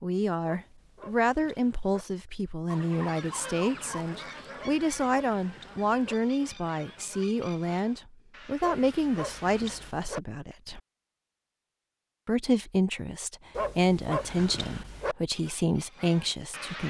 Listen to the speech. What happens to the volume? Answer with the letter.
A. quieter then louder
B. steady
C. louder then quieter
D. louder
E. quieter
B.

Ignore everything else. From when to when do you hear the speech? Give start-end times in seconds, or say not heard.
0.0-10.8, 12.2-16.8.